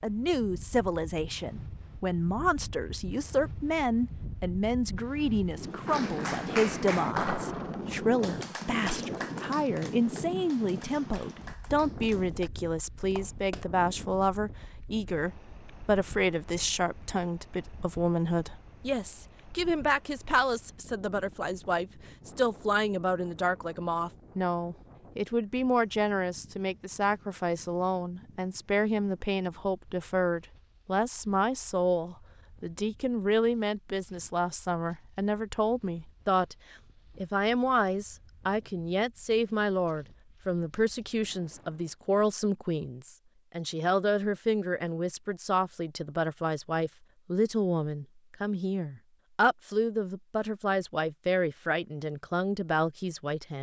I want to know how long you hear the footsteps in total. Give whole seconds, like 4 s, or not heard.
not heard.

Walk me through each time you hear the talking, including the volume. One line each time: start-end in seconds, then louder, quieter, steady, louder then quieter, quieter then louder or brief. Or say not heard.
0.0-36.5 steady
37.1-53.5 steady.